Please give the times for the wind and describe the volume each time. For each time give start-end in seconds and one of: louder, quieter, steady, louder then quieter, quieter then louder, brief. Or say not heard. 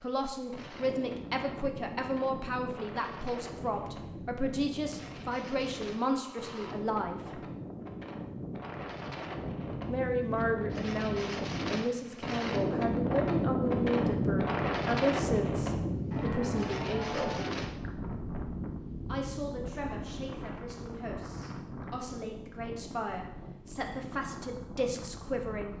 0.0-25.7 louder then quieter.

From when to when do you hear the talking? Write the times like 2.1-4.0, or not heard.
0.0-7.4, 9.8-17.4, 19.1-25.7.